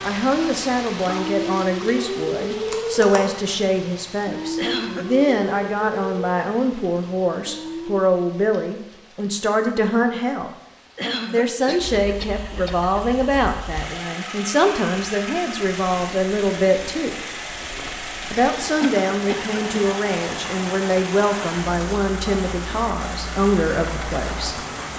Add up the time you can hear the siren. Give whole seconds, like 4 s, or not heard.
8 s.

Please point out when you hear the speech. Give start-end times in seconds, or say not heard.
0.0-10.5, 11.3-17.1, 18.3-24.6.